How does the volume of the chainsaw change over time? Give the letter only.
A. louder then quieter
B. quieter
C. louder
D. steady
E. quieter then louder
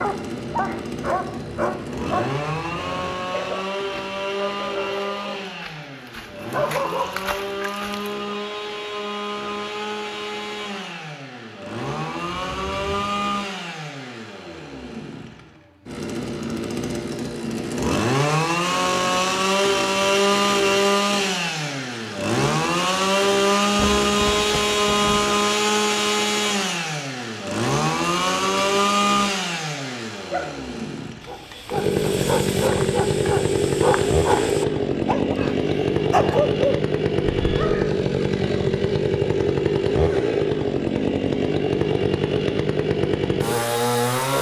C.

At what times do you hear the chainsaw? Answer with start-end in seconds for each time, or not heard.
0.0-44.3.